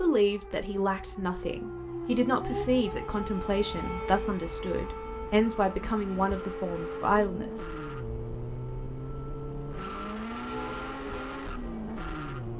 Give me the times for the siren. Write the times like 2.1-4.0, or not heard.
0.0-12.5.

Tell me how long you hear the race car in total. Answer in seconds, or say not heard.
12 s.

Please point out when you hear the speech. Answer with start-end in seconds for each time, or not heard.
0.0-7.8.